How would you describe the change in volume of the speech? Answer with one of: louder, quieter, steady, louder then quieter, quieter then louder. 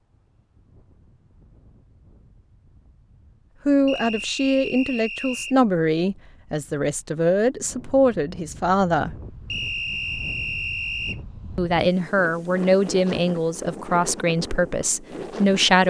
steady.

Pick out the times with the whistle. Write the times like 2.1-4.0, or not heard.
3.9-5.5, 9.5-11.2.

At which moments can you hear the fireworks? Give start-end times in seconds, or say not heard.
not heard.